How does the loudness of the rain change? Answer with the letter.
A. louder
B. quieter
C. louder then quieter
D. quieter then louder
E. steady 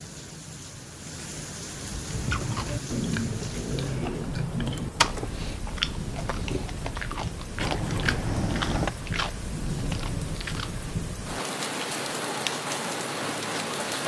A.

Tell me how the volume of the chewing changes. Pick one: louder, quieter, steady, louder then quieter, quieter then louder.
quieter.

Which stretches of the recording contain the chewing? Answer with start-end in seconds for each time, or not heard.
2.0-10.8.